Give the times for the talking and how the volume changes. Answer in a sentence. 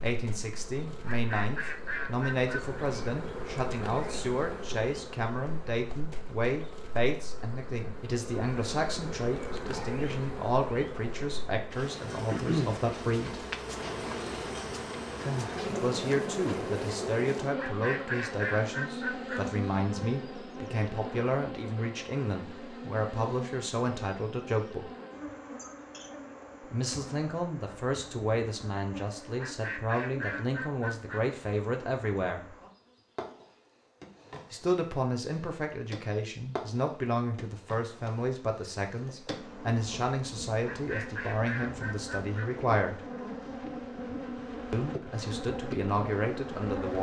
You can hear the talking from 0.0 to 13.4 s, at a steady volume; from 15.7 to 24.9 s, at a steady volume; from 26.6 to 32.5 s, at a steady volume; from 34.5 to 43.0 s, at a steady volume; and briefly from 44.7 to 46.9 s.